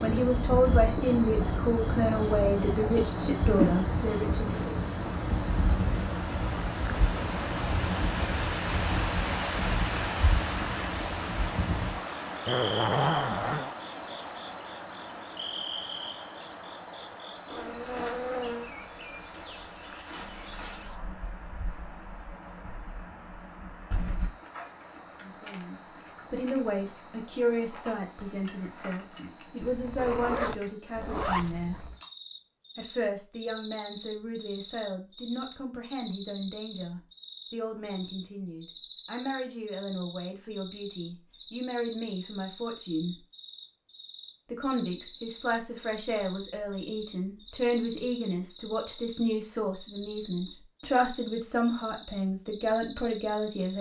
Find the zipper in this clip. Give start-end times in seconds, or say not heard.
12.4-13.8, 29.6-31.9.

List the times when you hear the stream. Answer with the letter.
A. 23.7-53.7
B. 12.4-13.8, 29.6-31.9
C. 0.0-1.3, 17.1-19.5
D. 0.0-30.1
D.